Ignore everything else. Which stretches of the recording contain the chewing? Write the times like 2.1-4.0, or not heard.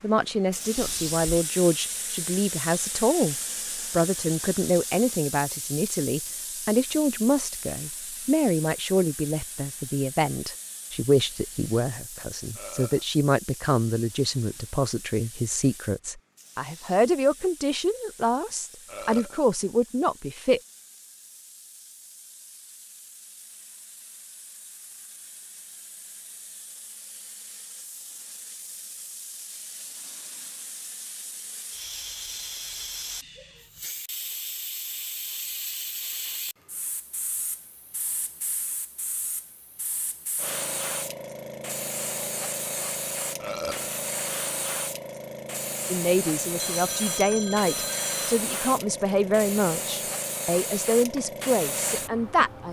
not heard.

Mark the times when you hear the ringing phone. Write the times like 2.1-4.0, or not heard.
0.8-1.4, 46.5-48.4.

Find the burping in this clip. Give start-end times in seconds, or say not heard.
12.6-13.1, 18.9-19.4, 43.4-43.9.